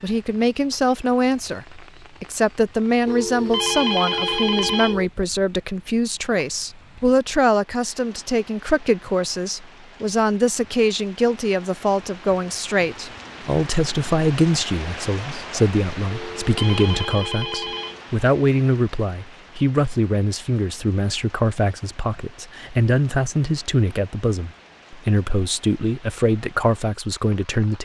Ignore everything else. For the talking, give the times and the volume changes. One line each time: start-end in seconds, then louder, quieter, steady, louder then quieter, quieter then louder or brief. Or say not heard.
0.0-27.8 steady.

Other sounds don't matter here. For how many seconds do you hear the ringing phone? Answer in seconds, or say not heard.
4 s.